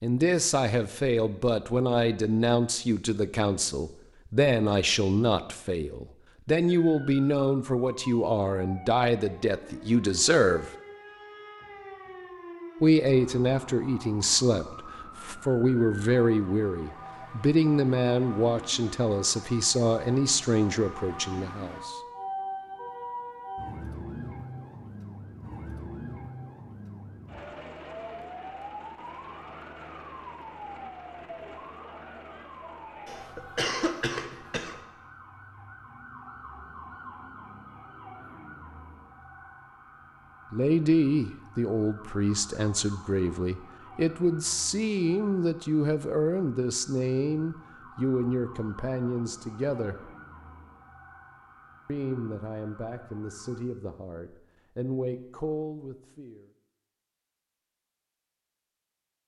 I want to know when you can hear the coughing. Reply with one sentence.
You can hear the coughing from 33.0 to 34.8 s.